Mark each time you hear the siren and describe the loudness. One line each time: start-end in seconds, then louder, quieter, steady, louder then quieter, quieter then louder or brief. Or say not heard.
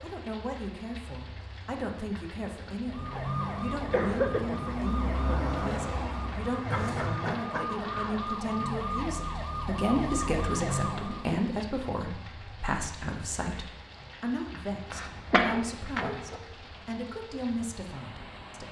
2.8-11.4 steady.